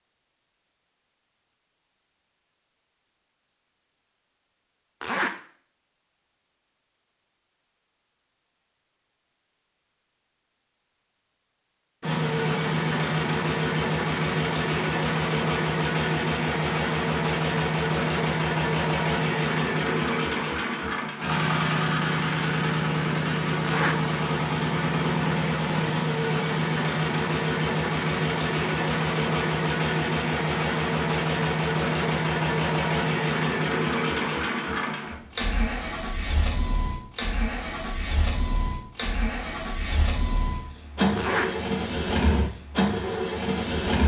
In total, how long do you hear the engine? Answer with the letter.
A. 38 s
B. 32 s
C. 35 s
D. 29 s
B.